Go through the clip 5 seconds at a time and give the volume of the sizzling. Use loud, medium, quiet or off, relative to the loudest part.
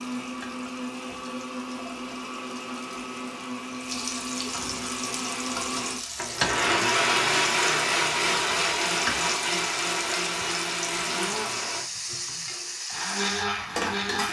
medium, loud, loud.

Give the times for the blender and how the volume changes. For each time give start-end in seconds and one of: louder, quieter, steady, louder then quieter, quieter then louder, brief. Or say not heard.
0.0-14.2 louder then quieter.